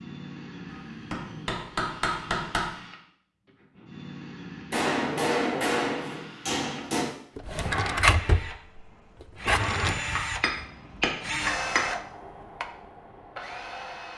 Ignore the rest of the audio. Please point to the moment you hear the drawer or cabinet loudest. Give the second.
8 s.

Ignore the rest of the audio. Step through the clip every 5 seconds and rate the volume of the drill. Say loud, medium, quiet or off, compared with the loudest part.
medium, loud, loud.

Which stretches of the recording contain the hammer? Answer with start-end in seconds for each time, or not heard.
1.1-2.7, 4.7-7.1, 10.1-11.8.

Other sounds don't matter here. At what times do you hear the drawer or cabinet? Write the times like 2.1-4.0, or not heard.
7.3-10.0.